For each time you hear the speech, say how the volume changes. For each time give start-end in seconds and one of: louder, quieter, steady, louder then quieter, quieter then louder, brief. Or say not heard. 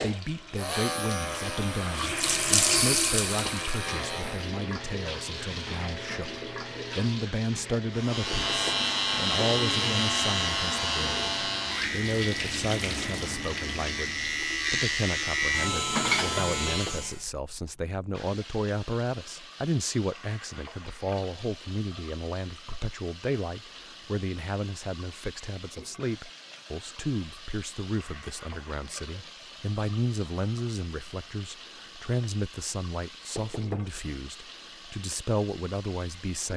0.0-36.5 steady.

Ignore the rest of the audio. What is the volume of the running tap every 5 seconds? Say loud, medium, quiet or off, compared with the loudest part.
loud, medium, medium, quiet, quiet, quiet, quiet, quiet.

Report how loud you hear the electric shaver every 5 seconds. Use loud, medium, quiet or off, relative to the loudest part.
medium, loud, loud, loud, off, off, off, off.